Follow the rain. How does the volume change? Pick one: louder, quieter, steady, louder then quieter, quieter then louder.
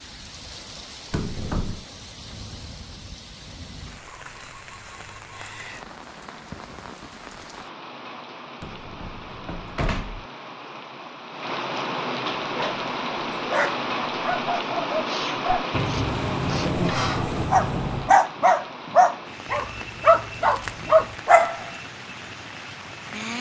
louder then quieter.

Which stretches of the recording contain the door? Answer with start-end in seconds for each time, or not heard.
1.1-1.9, 8.6-10.2, 15.7-18.1.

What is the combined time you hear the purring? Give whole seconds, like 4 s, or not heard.
not heard.